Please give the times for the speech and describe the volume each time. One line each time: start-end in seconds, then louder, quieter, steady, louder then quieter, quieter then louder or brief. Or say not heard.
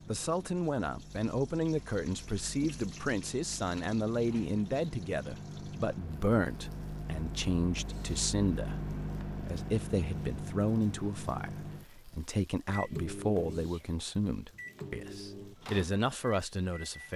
0.1-17.1 steady.